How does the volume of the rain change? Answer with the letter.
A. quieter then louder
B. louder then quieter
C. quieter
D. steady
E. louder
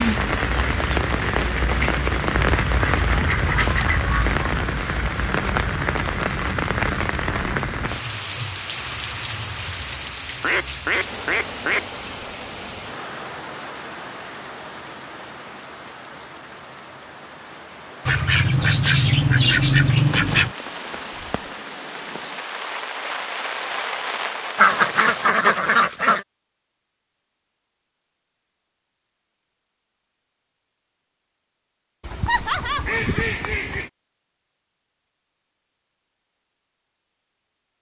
A.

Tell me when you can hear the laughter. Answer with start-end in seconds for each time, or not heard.
32.2-33.3.